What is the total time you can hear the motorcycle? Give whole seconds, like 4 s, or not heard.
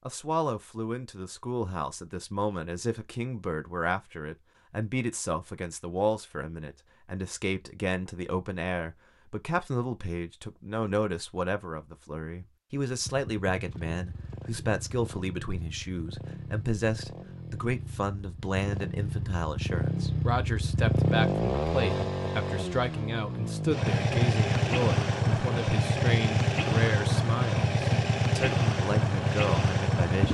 17 s.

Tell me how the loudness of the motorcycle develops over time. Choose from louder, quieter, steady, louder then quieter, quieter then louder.
louder.